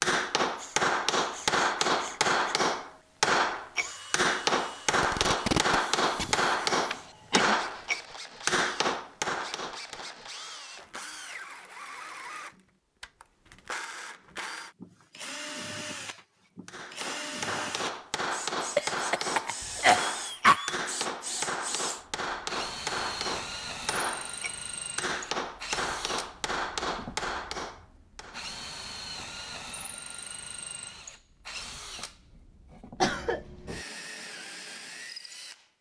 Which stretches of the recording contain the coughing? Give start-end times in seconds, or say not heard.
6.9-7.5, 18.8-20.8, 33.0-33.8.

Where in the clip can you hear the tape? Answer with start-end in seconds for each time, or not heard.
4.9-6.3.